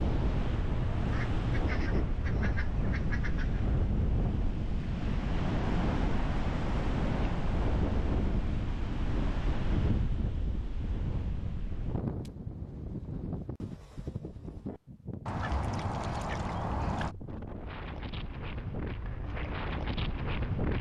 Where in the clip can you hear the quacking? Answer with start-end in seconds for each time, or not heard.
1.1-3.6, 15.2-17.1.